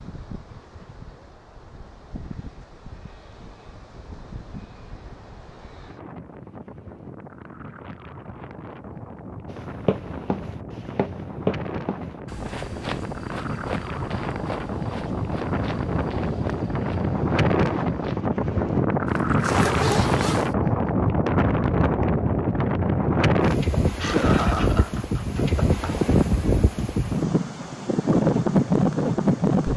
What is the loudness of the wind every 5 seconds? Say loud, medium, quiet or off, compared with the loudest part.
quiet, quiet, medium, loud, loud, loud.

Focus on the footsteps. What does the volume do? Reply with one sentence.
The volume of the footsteps goes down.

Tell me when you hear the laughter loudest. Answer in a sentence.
The loudest moment of the laughter is at 24 seconds.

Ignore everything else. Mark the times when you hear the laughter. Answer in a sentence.
You can hear the laughter from 23.9 to 25.9 s.